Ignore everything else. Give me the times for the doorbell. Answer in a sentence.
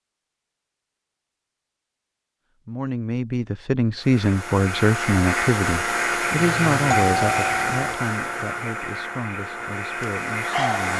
You can hear the doorbell from 6.3 to 8.0 s.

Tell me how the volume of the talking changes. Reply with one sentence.
The loudness of the talking goes down.